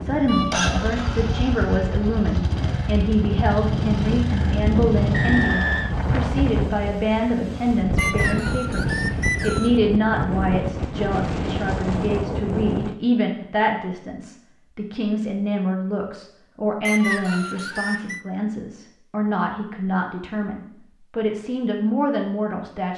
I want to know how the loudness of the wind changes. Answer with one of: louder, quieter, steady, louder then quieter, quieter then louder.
louder.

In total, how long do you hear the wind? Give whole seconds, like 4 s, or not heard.
13 s.